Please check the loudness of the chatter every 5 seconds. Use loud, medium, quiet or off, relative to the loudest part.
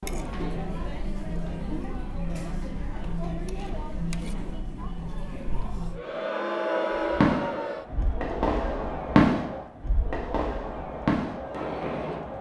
loud, loud, medium.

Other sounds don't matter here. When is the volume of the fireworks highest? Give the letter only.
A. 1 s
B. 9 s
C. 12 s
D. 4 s
B.